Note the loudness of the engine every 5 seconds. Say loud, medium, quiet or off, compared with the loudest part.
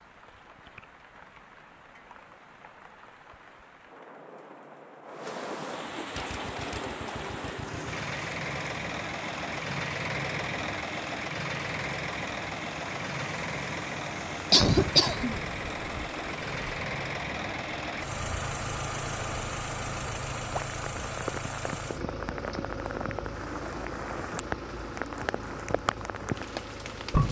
off, loud, loud, loud, loud, medium.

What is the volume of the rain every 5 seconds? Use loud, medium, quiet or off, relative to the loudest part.
quiet, medium, medium, medium, medium, loud.